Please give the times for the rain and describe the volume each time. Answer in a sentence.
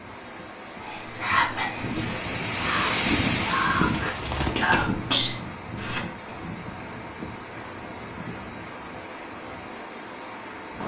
You can hear the rain from 0.0 to 10.8 s, getting louder then quieter.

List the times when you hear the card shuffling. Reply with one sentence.
The card shuffling can be heard from 3.9 to 5.0 s.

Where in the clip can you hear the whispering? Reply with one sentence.
The whispering can be heard from 0.8 to 6.5 s.